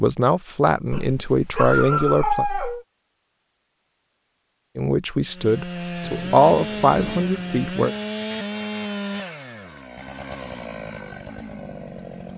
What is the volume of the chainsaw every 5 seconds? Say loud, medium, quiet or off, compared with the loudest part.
off, loud, medium.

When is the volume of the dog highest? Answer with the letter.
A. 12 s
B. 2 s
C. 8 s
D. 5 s
B.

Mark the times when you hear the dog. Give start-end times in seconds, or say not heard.
0.9-2.9.